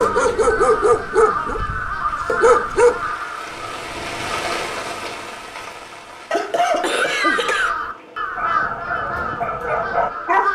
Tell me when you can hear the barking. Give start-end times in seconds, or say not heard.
0.0-3.1, 8.3-10.5.